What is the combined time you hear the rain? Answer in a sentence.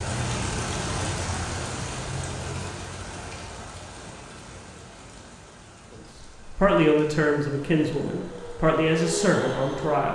The rain can be heard for 10 seconds in total.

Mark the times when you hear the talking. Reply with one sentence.
The talking can be heard from 5.9 to 10.1 s.